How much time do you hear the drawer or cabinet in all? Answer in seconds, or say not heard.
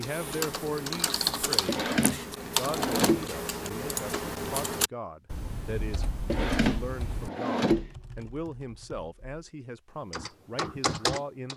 3 s.